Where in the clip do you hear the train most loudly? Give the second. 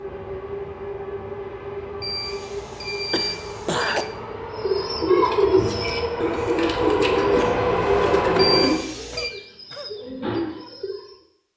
8 s.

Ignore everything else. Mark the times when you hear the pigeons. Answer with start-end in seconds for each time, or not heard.
4.5-11.2.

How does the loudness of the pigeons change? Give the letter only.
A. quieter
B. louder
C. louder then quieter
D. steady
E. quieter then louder
A.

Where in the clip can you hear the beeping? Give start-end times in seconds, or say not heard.
2.0-4.1, 8.3-9.3.